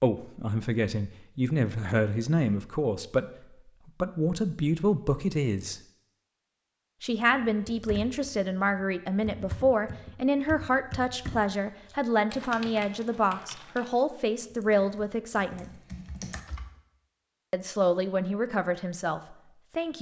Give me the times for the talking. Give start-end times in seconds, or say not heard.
0.0-3.2, 3.9-5.8, 7.0-15.7, 17.5-19.9.